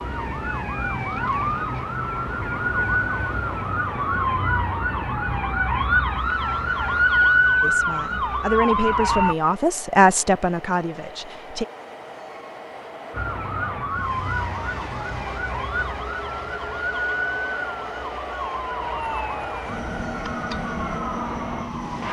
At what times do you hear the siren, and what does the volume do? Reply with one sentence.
You can hear the siren from 0.0 to 9.3 s, getting louder; and from 13.1 to 22.0 s, at a steady volume.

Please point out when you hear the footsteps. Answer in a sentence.
The footsteps can't be heard in this clip.